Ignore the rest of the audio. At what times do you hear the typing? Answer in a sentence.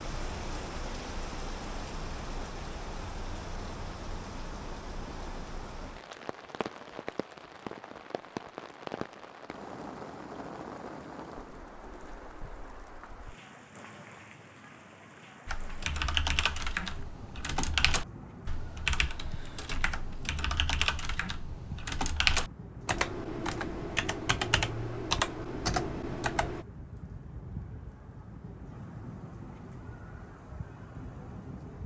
The typing can be heard from 15.4 to 26.6 s.